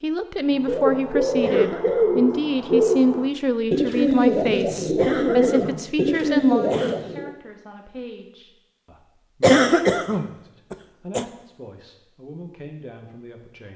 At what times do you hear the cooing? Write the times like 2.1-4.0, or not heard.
0.6-7.3.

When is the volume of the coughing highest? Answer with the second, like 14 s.
10 s.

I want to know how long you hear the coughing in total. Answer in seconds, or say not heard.
5 s.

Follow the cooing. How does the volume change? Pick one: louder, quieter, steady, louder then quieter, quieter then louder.
steady.